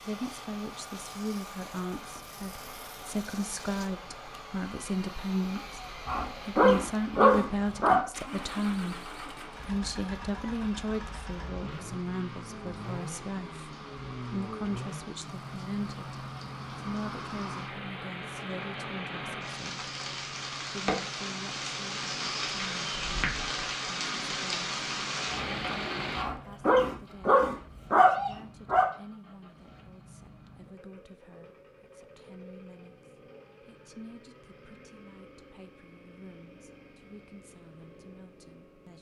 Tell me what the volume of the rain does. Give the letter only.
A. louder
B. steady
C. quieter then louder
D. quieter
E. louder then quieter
A.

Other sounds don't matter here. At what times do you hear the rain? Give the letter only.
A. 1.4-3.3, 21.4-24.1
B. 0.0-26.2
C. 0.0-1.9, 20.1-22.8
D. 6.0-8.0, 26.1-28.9
B.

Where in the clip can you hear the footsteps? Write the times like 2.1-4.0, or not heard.
not heard.